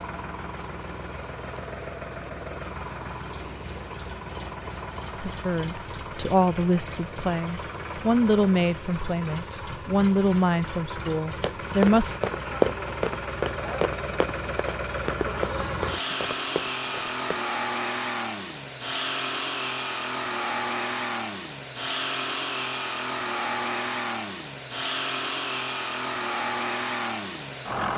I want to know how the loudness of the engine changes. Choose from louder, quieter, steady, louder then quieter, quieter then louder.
louder.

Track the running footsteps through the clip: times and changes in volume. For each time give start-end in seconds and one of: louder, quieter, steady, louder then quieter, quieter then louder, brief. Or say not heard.
11.3-17.4 quieter.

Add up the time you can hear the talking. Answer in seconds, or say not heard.
7 s.